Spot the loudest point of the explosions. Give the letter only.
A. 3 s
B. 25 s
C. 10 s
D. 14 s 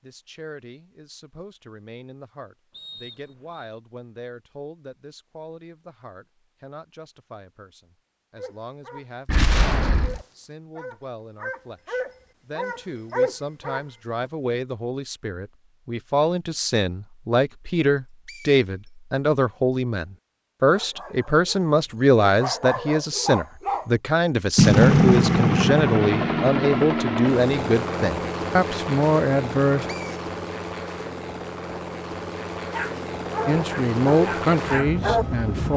B.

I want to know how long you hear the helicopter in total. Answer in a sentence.
You can hear the helicopter for 11 seconds altogether.